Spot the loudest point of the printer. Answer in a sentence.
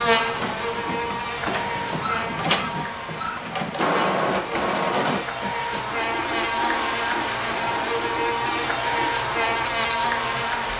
The volume of the printer peaks at 4 seconds.